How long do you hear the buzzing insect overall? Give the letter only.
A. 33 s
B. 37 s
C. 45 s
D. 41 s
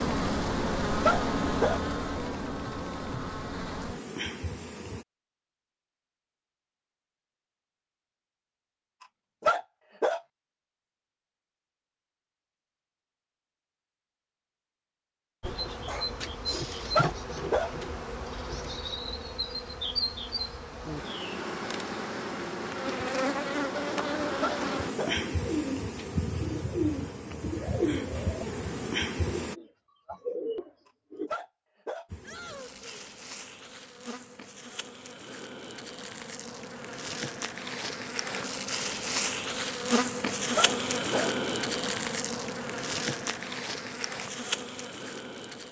A.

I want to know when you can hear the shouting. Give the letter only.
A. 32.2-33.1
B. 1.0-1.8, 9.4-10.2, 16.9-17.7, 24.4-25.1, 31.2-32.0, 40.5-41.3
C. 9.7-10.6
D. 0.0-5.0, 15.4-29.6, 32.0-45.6
A.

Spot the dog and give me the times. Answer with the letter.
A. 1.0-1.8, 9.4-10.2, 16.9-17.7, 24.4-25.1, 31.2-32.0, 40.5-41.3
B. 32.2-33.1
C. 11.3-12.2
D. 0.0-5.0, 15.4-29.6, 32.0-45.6
A.